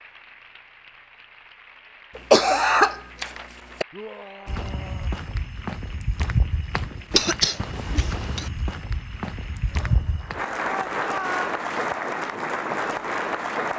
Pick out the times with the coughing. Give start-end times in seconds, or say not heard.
2.1-3.9, 7.1-8.5.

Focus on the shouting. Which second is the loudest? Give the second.
11 s.